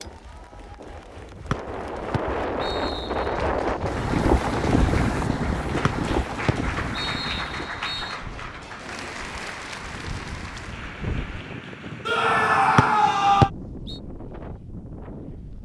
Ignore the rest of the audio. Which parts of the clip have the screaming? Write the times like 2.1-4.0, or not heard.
12.1-13.5.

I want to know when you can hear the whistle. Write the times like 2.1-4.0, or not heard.
1.5-3.3, 5.8-8.2, 12.8-13.9.